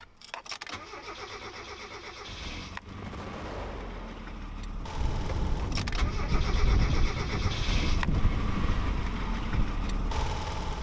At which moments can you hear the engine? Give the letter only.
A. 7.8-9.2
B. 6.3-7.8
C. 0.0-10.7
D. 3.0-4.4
C.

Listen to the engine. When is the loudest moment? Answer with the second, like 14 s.
8 s.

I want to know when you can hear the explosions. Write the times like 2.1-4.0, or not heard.
3.0-4.4.